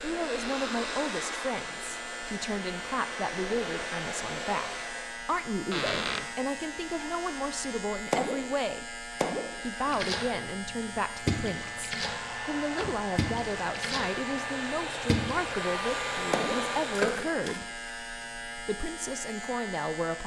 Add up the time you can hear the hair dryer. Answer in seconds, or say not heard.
10 s.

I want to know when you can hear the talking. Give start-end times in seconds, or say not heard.
0.0-8.8, 9.6-17.6, 18.6-20.2.